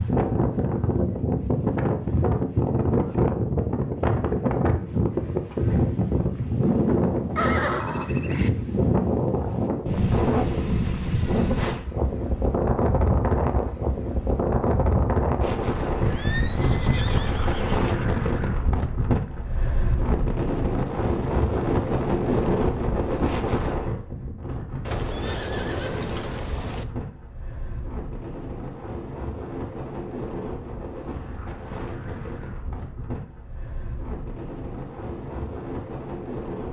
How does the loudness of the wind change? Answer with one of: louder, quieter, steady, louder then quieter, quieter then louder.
quieter.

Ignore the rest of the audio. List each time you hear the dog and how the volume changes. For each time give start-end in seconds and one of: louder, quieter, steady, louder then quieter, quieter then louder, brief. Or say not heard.
not heard.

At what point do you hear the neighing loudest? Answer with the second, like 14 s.
8 s.